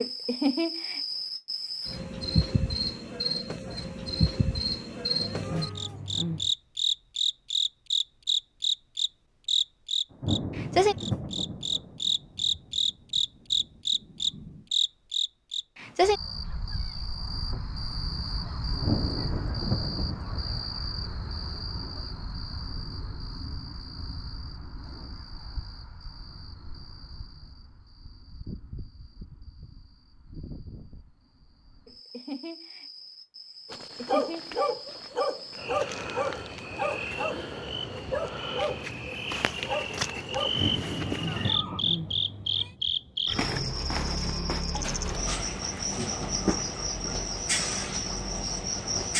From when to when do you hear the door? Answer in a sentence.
The door can't be heard in this clip.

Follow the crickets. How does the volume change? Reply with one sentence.
The loudness of the crickets goes down, then up.